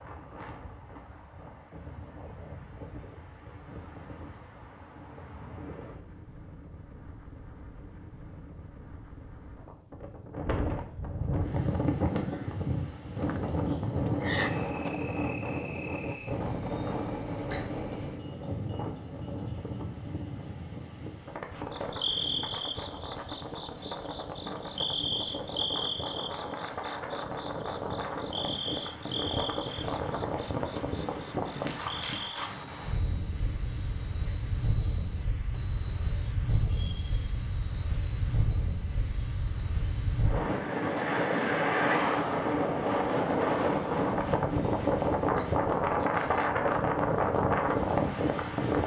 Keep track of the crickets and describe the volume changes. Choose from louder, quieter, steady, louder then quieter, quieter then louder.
louder then quieter.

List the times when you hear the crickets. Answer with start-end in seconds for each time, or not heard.
11.3-48.6.